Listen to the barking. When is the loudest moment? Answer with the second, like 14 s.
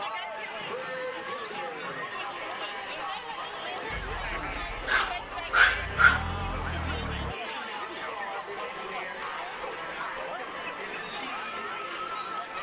6 s.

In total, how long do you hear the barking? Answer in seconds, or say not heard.
2 s.